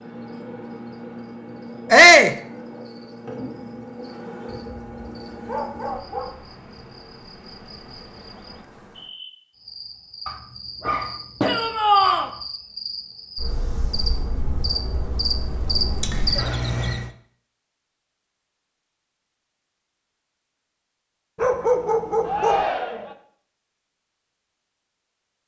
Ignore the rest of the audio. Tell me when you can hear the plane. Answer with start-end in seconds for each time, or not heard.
not heard.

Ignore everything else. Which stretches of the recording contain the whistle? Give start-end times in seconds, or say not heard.
not heard.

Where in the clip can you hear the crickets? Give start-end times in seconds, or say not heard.
0.0-17.1.